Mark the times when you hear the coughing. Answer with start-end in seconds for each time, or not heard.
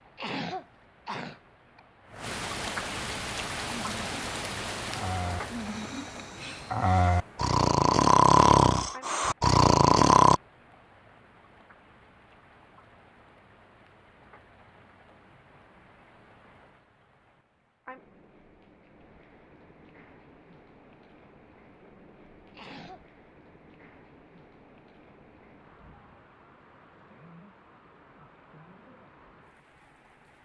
0.1-1.8, 22.6-23.1.